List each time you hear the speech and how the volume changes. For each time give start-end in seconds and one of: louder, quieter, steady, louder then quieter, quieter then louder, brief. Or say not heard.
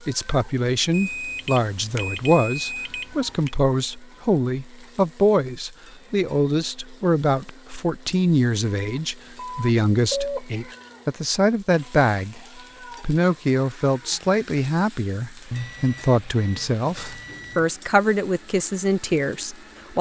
0.1-19.9 steady.